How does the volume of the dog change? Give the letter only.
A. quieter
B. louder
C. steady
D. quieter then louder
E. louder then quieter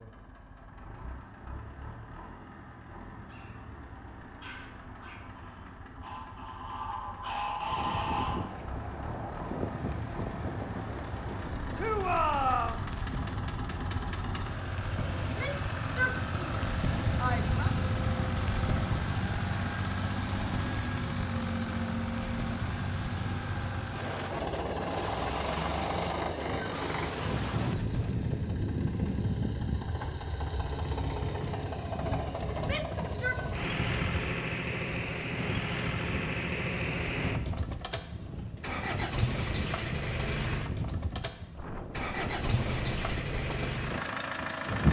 B.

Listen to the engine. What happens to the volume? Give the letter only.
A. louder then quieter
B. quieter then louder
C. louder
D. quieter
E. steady
C.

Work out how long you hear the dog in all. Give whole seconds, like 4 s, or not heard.
5 s.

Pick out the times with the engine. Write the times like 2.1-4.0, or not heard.
0.0-44.8.